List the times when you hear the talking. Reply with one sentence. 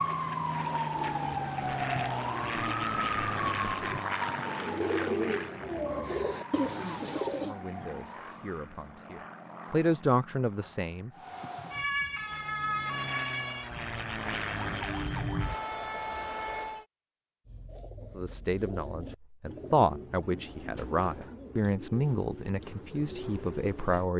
You can hear the talking from 7.3 to 11.1 s and from 18.1 to 24.1 s.